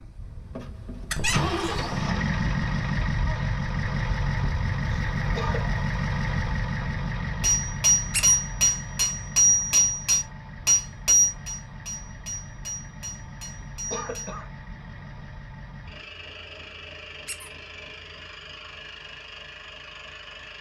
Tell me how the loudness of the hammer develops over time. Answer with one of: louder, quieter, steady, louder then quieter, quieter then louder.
quieter.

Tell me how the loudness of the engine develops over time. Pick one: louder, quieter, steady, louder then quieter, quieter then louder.
quieter.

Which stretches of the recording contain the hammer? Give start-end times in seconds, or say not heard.
7.4-14.4.